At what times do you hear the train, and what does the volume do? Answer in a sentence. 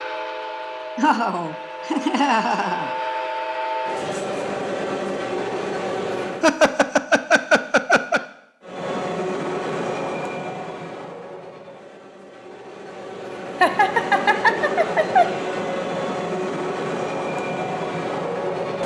The train can be heard from 0.0 to 6.5 s, getting louder; and from 8.6 to 18.8 s, getting quieter then louder.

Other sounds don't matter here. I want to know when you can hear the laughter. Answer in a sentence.
You can hear the laughter from 0.9 to 2.9 s, from 6.4 to 8.2 s and from 13.6 to 15.3 s.